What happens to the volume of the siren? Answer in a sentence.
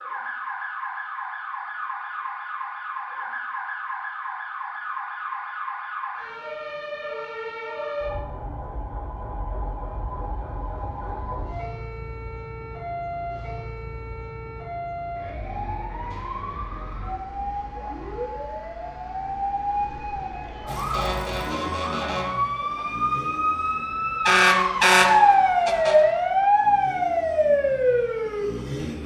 The loudness of the siren goes up.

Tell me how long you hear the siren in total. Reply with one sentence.
The siren can be heard for 29 seconds in total.